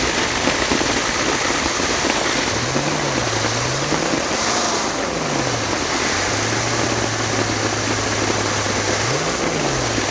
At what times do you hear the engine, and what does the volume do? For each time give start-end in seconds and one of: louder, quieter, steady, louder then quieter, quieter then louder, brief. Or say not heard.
0.0-10.0 steady.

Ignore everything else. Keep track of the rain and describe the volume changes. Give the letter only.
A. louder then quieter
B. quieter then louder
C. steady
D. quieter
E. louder
C.